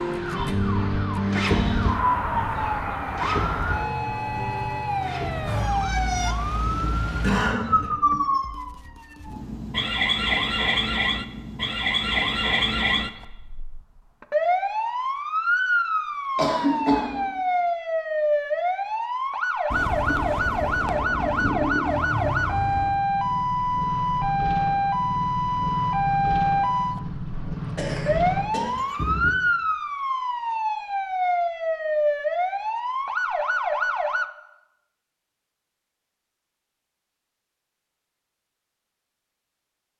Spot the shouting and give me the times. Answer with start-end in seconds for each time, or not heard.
not heard.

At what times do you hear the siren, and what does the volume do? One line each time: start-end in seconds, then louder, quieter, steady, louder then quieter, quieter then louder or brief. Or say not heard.
0.0-34.2 steady.